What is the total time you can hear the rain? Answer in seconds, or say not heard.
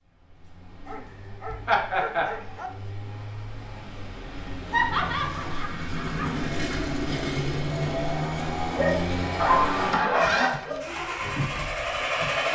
not heard.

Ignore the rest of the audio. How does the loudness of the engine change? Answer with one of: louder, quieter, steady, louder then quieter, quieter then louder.
louder.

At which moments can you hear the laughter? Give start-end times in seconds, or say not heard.
1.6-2.2, 4.7-6.2, 9.3-10.3.